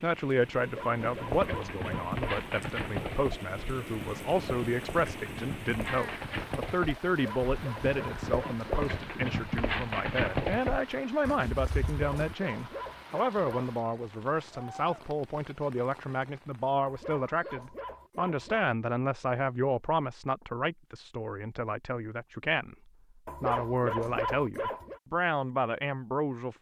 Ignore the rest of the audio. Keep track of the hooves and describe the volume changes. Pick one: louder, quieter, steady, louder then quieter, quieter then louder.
quieter then louder.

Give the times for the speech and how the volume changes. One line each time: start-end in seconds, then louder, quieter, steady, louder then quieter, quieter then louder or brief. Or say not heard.
0.0-26.5 steady.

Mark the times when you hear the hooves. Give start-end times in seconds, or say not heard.
0.9-12.3.